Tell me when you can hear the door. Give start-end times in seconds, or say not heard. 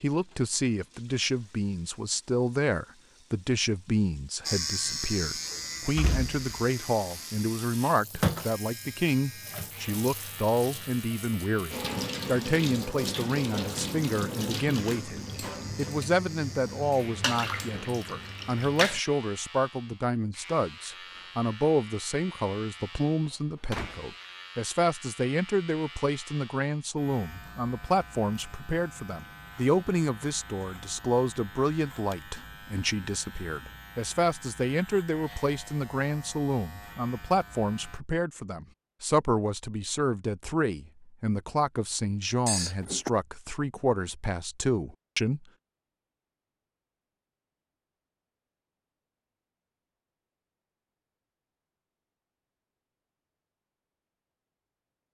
5.5-6.5, 23.6-24.1, 42.5-43.1.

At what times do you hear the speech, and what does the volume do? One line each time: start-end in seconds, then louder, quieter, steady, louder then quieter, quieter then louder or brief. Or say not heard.
0.0-45.5 steady.